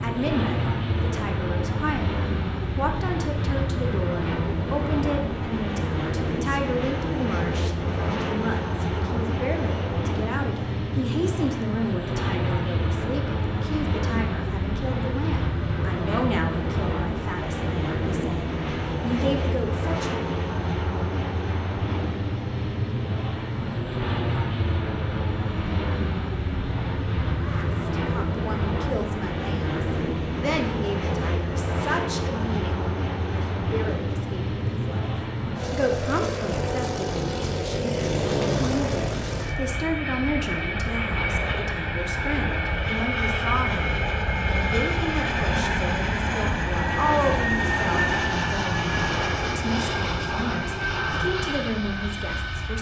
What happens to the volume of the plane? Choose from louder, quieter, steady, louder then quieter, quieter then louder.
steady.